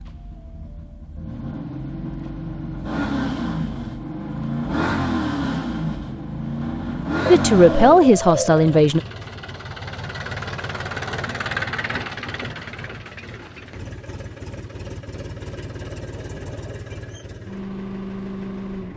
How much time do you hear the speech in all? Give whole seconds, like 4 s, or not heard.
2 s.